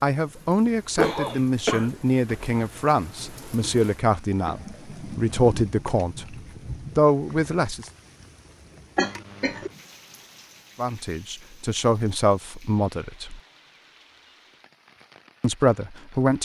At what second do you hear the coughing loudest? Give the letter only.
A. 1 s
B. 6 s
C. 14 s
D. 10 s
A.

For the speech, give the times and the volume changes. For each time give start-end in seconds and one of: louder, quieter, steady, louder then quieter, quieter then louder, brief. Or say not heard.
0.0-7.8 steady
10.8-13.4 brief
15.4-16.4 brief.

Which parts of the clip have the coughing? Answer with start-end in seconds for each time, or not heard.
0.9-2.5, 8.9-9.7.